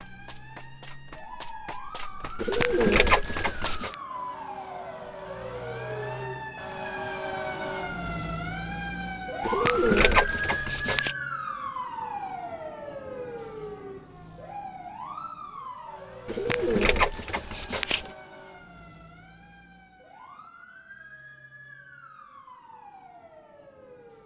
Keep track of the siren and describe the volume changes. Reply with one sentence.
The loudness of the siren goes up, then down.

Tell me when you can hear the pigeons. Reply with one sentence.
The pigeons can be heard from 2.4 to 4.0 s, from 9.4 to 11.2 s and from 16.2 to 18.1 s.